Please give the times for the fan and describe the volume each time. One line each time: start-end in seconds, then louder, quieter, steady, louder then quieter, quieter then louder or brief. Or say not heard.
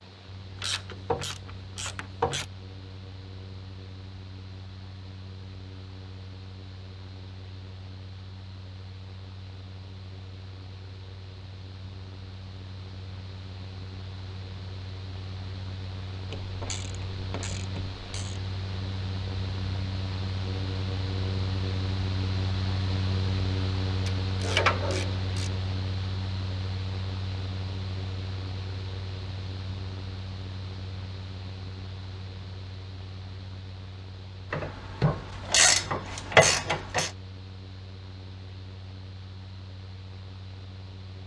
0.0-41.2 louder then quieter.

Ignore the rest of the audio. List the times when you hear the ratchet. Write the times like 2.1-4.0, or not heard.
0.6-2.5, 16.3-18.4, 24.1-25.5, 34.5-37.1.